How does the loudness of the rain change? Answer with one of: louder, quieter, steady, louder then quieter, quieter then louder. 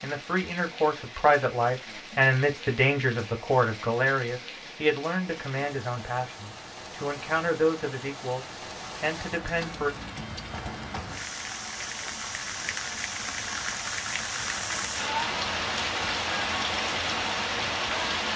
louder.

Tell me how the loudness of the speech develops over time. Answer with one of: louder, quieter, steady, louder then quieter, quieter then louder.
quieter.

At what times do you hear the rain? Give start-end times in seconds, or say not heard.
0.0-18.3.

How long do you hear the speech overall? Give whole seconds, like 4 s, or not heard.
10 s.